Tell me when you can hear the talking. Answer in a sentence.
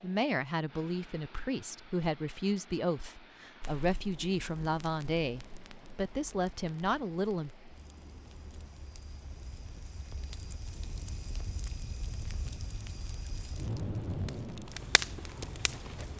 You can hear the talking from 0.0 to 7.5 s.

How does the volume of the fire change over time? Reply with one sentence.
The volume of the fire goes up.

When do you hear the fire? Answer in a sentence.
You can hear the fire from 3.6 to 16.1 s.